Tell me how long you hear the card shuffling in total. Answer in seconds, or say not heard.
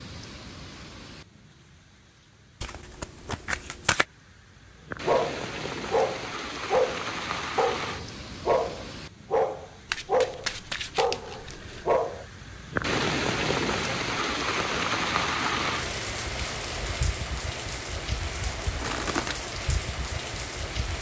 4 s.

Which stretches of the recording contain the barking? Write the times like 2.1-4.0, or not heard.
5.0-12.2.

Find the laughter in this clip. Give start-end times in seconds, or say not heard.
not heard.